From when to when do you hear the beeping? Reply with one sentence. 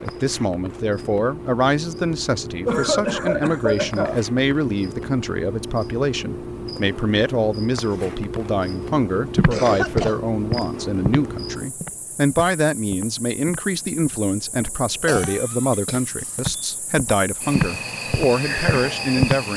The beeping can't be heard in this clip.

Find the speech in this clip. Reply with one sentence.
You can hear the speech from 0.0 to 19.5 s.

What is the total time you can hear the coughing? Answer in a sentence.
You can hear the coughing for 4 seconds altogether.